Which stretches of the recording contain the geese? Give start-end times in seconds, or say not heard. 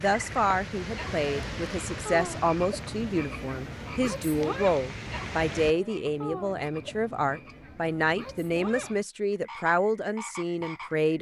not heard.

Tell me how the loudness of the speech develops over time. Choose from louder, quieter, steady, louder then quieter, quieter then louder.
steady.